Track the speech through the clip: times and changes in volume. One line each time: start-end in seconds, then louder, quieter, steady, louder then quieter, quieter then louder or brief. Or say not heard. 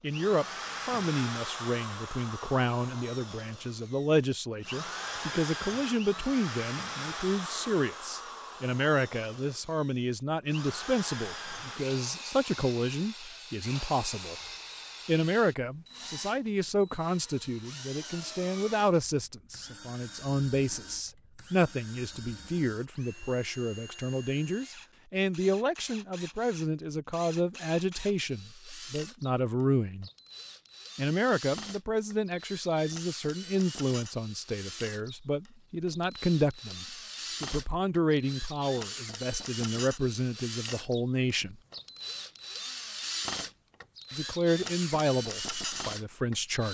0.0-14.3 steady
15.1-30.1 steady
30.9-41.5 steady
44.1-46.6 brief.